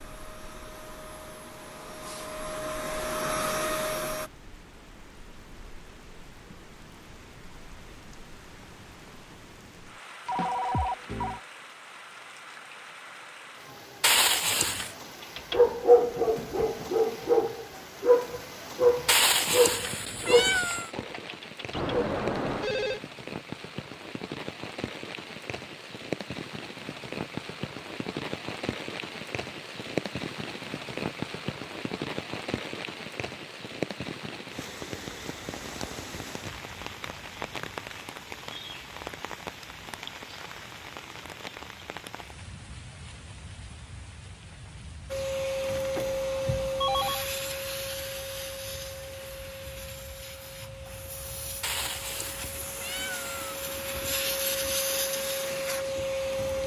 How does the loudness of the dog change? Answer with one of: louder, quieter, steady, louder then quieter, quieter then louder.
quieter.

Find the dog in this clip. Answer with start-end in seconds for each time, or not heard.
15.2-22.1.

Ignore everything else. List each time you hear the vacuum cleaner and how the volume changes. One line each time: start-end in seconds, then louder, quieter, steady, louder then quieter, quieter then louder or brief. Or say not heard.
0.0-4.3 louder
45.1-56.6 quieter then louder.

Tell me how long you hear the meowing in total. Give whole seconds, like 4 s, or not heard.
5 s.